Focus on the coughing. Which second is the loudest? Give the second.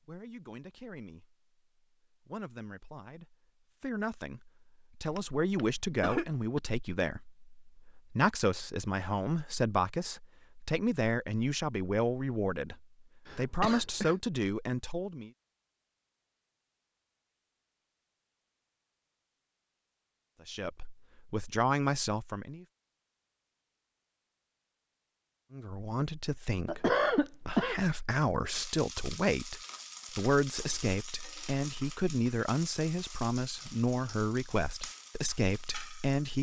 27 s.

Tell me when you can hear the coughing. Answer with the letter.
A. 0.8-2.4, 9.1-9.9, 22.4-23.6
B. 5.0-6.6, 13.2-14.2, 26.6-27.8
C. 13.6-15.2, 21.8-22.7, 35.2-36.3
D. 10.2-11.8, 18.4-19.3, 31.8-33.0
B.